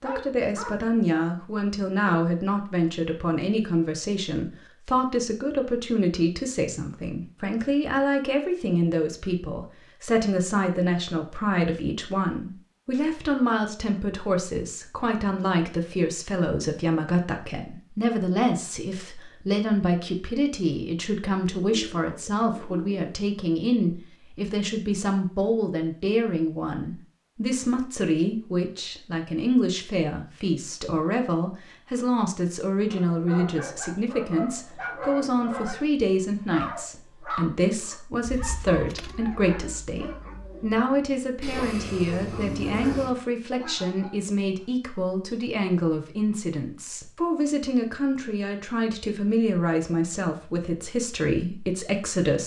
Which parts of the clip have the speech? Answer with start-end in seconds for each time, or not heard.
0.0-52.4.